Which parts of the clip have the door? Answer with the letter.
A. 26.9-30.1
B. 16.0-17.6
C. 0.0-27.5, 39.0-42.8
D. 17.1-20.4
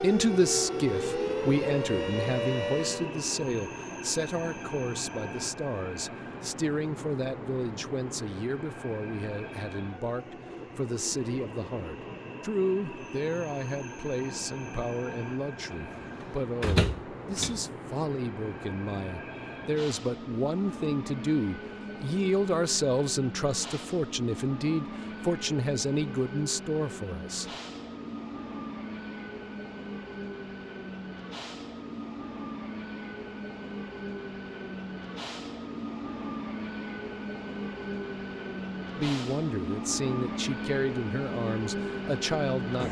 B.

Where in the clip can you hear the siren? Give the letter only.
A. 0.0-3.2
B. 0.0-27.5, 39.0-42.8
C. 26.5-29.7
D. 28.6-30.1
A.